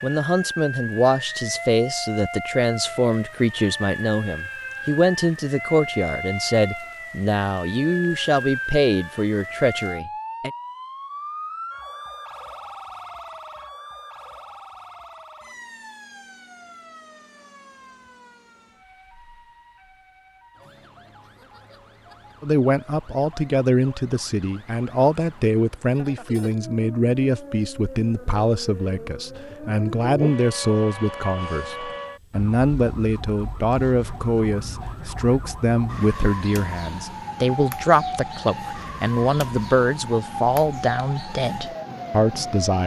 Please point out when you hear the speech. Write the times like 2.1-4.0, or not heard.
0.0-10.5, 22.4-42.8.